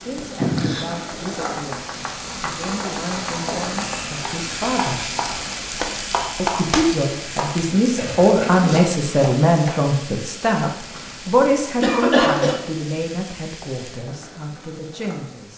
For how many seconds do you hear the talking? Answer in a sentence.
The talking can be heard for 14 seconds in total.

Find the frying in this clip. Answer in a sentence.
You can hear the frying from 0.0 to 15.5 s.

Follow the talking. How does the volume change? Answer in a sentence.
The volume of the talking goes up, then down.